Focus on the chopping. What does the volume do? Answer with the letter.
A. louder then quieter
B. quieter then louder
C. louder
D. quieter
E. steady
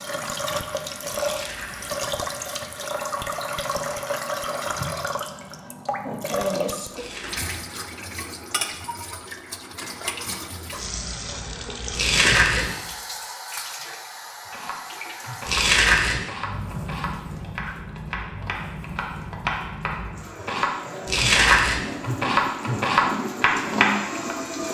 C.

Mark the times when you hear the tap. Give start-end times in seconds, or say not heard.
0.0-24.6.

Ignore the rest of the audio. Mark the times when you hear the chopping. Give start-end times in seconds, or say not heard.
14.4-24.4.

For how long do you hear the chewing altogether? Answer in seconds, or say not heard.
4 s.